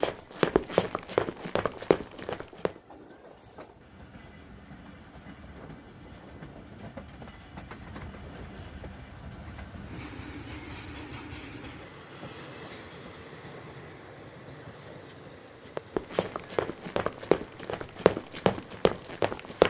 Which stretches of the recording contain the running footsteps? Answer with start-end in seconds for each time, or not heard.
0.0-2.8, 15.8-19.6.